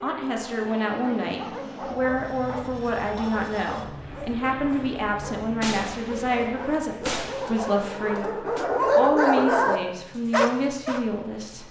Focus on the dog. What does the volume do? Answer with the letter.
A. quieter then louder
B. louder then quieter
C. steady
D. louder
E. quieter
D.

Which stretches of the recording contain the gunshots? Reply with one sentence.
The gunshots can be heard from 5.6 to 8.7 s.